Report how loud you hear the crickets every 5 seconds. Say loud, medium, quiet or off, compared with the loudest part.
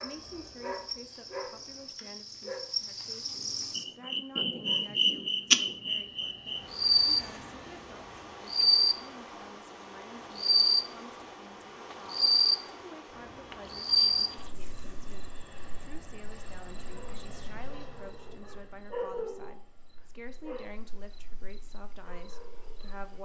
medium, loud, loud, quiet, quiet.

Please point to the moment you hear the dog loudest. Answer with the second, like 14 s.
19 s.